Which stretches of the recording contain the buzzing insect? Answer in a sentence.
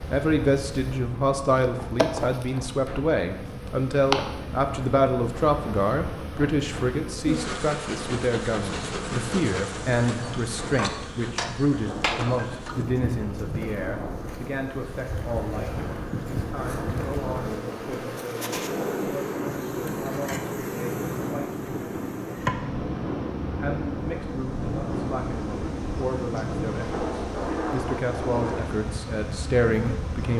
The buzzing insect can be heard from 0.0 to 30.3 s.